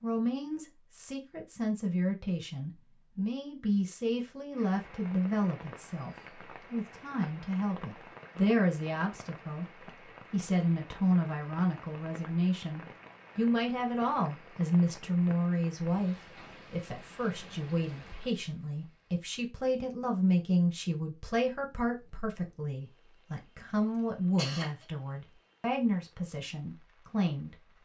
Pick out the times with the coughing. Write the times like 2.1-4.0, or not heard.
23.9-24.9.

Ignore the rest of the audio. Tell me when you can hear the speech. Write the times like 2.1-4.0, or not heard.
0.0-27.6.